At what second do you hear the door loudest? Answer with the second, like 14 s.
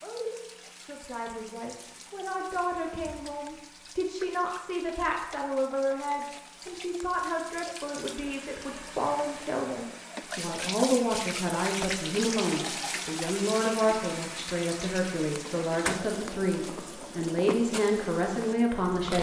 16 s.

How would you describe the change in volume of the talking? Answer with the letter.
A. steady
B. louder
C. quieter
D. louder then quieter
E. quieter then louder
B.